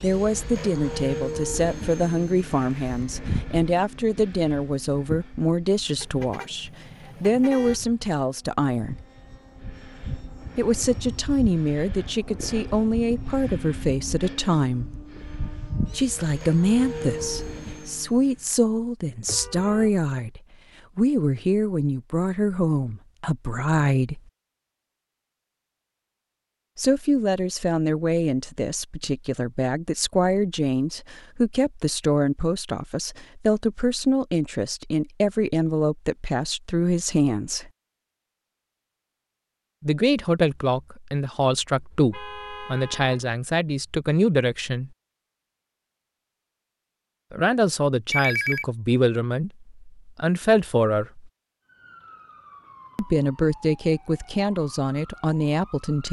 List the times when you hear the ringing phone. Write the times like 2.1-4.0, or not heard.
48.1-48.6.